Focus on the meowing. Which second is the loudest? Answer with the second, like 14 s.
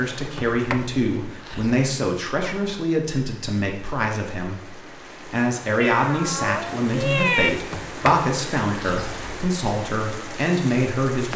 7 s.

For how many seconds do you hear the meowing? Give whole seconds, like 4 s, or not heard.
2 s.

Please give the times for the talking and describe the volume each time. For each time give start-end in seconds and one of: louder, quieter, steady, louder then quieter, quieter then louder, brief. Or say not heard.
0.0-11.3 steady.